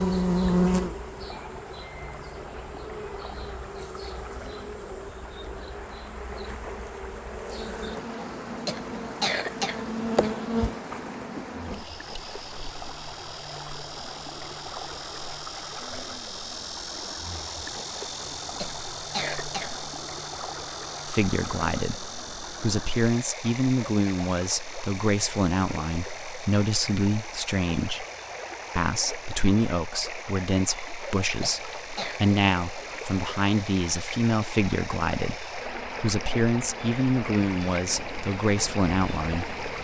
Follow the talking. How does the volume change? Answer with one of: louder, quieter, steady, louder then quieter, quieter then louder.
steady.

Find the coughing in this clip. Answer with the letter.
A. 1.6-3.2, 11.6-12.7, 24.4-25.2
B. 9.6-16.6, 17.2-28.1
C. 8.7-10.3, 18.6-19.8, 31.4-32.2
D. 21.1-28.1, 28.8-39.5
C.